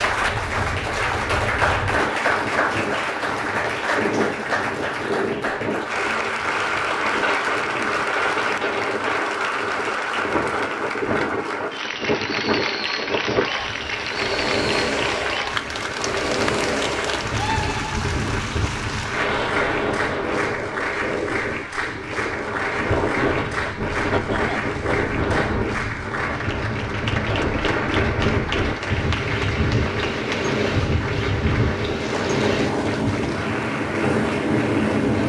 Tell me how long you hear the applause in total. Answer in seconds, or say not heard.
35 s.